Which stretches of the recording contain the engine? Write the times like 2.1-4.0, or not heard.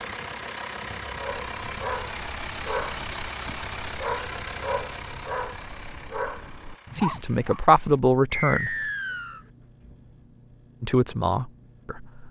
0.0-12.2.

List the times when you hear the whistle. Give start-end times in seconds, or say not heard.
8.3-9.4.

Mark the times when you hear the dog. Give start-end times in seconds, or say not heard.
1.1-7.6.